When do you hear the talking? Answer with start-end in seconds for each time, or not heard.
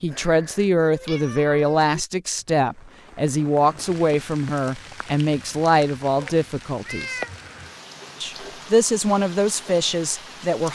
0.0-7.2, 8.2-10.6.